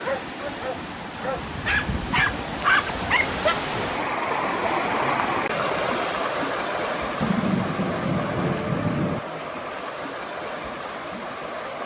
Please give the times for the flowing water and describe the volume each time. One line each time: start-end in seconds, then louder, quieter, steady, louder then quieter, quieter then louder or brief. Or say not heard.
0.0-11.8 louder then quieter.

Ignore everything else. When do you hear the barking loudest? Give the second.
3 s.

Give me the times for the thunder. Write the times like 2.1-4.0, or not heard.
7.2-9.2.